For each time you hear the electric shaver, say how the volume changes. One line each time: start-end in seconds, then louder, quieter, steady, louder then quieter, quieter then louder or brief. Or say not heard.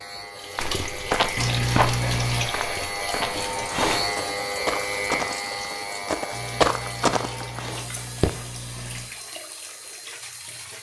0.0-10.7 louder then quieter.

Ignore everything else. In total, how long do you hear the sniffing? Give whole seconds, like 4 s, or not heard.
4 s.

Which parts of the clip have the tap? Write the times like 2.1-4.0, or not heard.
0.3-10.7.